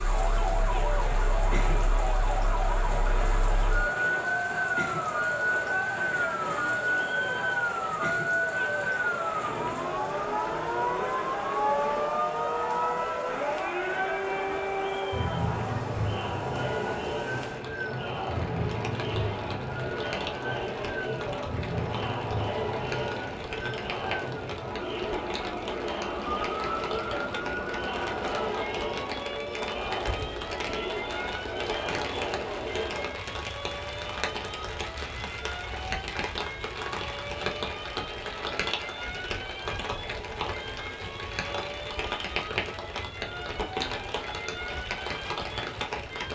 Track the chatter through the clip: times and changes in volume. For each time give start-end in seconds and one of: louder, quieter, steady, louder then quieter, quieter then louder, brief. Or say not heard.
0.0-46.2 quieter.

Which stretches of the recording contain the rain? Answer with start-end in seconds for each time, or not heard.
0.0-46.2.